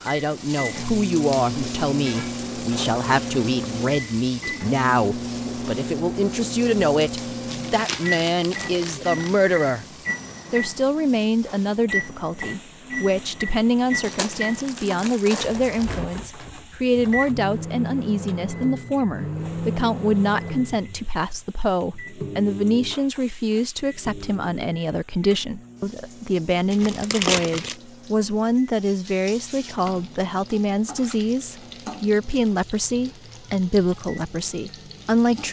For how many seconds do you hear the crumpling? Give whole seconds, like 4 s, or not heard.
5 s.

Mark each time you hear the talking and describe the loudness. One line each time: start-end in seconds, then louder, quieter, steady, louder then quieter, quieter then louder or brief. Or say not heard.
0.0-9.8 steady
10.5-35.4 steady.